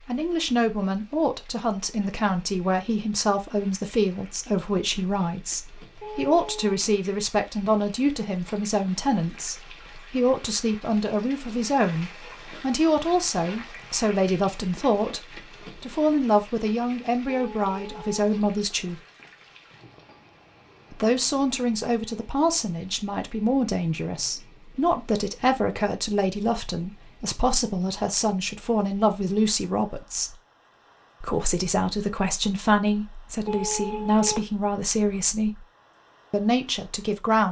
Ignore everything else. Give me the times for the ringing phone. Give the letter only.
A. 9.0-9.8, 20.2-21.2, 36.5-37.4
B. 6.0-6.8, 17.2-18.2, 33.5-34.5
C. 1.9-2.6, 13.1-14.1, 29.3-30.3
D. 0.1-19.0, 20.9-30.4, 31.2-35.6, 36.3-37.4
B.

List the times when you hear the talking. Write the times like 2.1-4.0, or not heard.
0.1-19.0, 20.9-30.4, 31.2-35.6, 36.3-37.4.